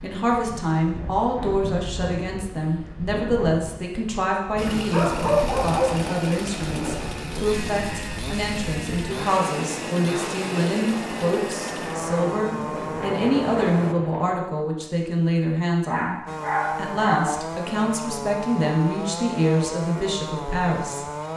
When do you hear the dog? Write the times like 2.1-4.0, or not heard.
4.6-7.0, 15.8-17.4.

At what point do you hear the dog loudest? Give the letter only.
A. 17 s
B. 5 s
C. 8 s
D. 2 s
B.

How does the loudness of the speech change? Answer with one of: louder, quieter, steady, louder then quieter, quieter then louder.
steady.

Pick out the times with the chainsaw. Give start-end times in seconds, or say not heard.
4.5-13.9, 16.2-21.3.